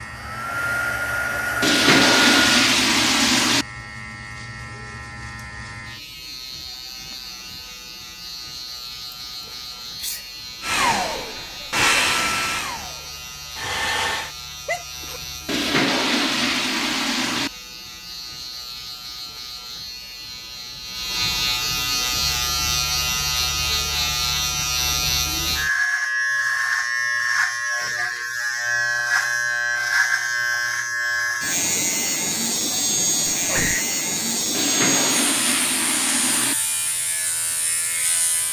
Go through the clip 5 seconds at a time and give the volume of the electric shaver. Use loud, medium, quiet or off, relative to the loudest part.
quiet, quiet, quiet, quiet, loud, loud, loud, medium.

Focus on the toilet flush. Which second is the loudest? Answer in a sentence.
The loudest moment of the toilet flush is at 2 seconds.